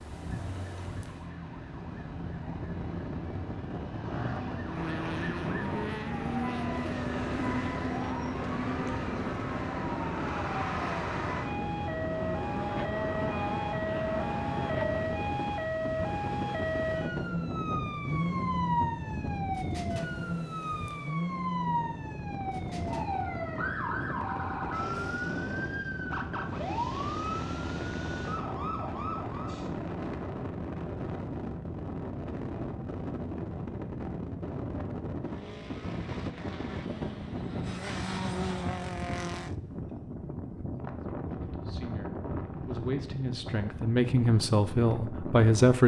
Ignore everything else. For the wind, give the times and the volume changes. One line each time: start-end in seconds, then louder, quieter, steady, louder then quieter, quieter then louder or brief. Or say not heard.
0.0-45.8 steady.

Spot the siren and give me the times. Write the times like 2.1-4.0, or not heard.
0.0-29.7.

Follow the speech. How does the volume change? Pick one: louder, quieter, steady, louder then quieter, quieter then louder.
louder.